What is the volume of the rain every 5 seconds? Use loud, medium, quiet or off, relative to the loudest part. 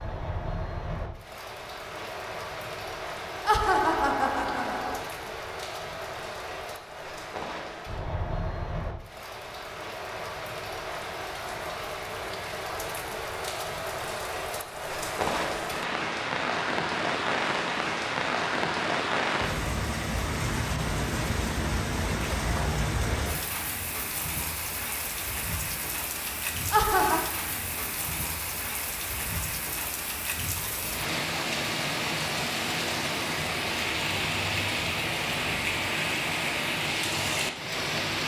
medium, medium, medium, loud, loud, medium, loud, loud.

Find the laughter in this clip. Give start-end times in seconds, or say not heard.
3.5-5.0, 26.7-27.3.